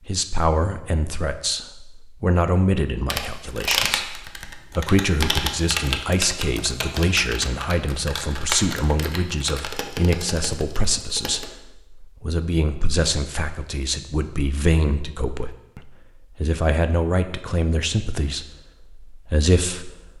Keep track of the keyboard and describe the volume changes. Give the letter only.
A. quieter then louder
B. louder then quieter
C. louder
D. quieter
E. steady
D.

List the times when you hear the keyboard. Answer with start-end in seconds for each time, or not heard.
3.0-11.5.